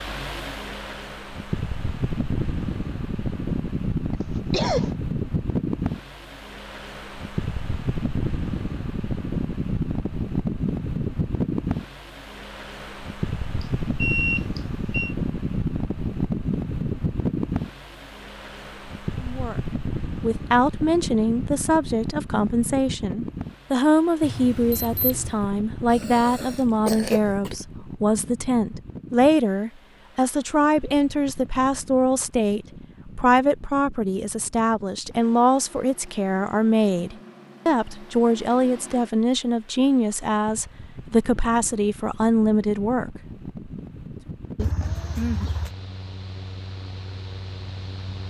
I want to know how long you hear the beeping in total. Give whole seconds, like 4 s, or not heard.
3 s.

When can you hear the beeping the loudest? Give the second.
14 s.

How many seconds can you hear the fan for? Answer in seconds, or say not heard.
48 s.